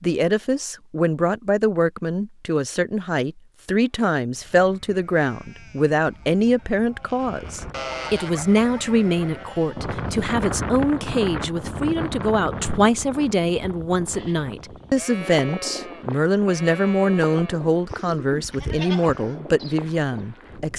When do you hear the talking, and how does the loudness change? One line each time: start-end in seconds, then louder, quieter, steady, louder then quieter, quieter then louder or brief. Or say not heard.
0.0-20.7 steady.